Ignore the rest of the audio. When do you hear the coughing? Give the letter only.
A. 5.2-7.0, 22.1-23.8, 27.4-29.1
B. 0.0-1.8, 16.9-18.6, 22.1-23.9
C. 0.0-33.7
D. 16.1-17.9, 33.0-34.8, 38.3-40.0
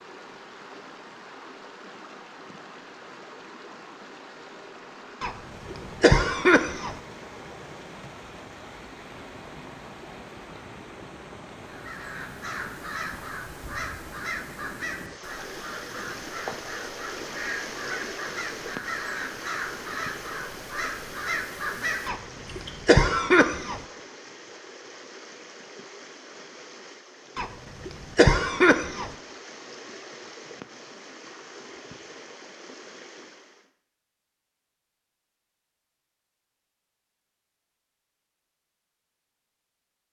A.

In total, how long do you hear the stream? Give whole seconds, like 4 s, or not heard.
34 s.